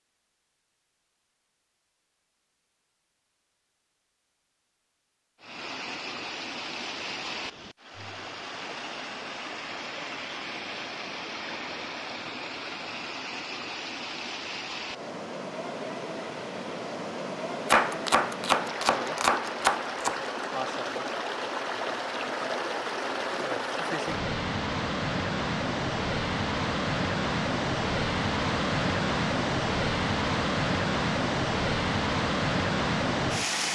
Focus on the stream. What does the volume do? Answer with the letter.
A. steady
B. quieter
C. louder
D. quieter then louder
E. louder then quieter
C.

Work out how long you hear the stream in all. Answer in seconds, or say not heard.
28 s.